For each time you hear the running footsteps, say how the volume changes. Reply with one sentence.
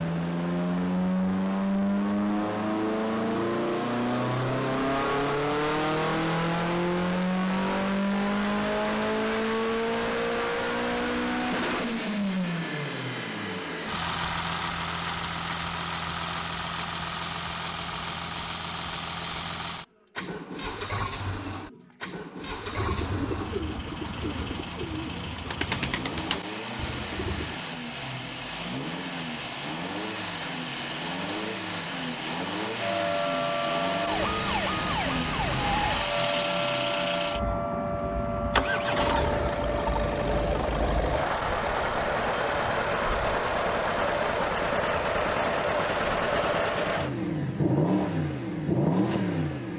The running footsteps can't be heard in this clip.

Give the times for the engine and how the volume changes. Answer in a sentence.
You can hear the engine from 0.0 to 49.7 s, getting quieter then louder.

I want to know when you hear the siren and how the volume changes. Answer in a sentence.
You can hear the siren from 32.8 to 40.4 s, at a steady volume.